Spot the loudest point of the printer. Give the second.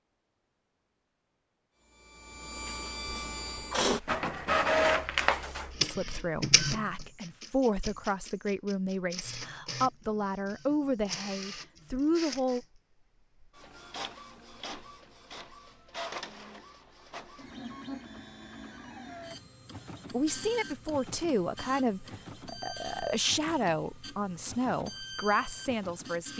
5 s.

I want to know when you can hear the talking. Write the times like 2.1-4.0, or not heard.
5.8-12.6, 20.1-26.3.